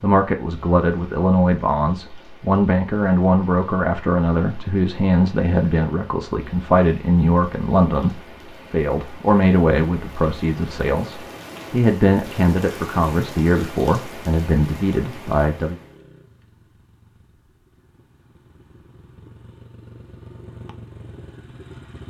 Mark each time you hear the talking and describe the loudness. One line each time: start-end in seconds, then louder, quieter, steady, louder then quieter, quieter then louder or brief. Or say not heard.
0.0-15.8 steady.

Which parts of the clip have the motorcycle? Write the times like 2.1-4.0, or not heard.
15.8-22.0.